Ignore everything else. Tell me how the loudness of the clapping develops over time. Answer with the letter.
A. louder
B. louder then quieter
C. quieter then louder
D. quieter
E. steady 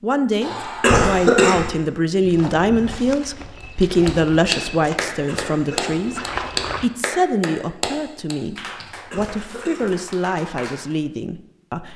D.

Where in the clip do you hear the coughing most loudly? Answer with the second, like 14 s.
1 s.